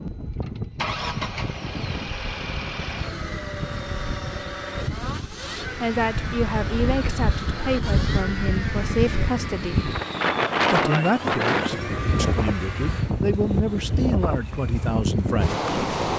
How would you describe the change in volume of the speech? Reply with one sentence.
The loudness of the speech stays about the same.